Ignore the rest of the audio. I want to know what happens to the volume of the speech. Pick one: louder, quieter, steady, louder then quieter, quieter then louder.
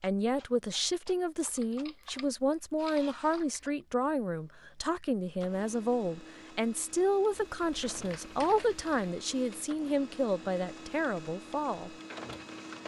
steady.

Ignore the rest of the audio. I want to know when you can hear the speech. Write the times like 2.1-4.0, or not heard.
0.0-11.9.